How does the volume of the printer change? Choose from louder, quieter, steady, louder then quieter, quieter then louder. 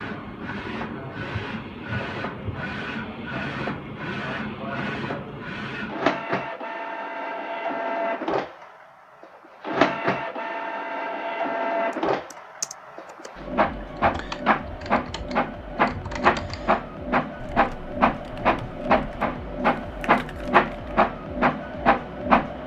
louder.